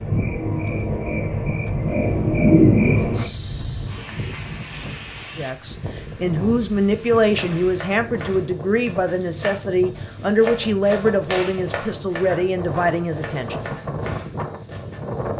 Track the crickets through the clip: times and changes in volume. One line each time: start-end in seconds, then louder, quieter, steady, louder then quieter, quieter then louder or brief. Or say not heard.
0.0-15.3 quieter then louder.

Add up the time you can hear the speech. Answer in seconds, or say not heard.
8 s.